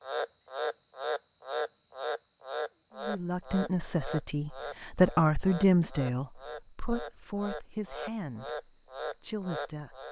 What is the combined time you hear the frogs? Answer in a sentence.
You can hear the frogs for 10 seconds altogether.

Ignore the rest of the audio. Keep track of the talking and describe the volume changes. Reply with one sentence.
The volume of the talking goes up, then down.